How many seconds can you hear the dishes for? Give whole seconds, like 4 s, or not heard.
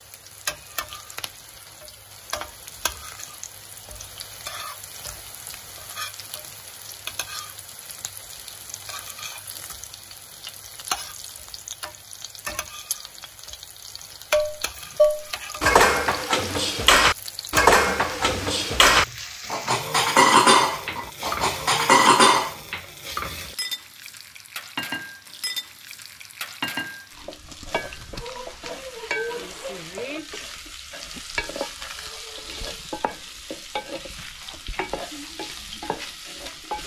8 s.